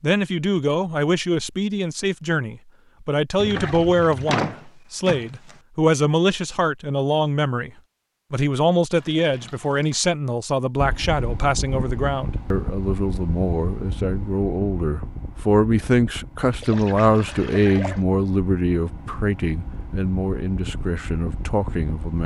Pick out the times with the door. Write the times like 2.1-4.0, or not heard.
4.2-5.5.